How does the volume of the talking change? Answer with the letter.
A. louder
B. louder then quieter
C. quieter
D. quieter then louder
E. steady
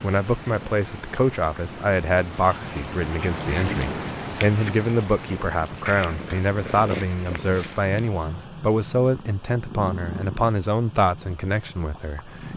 E.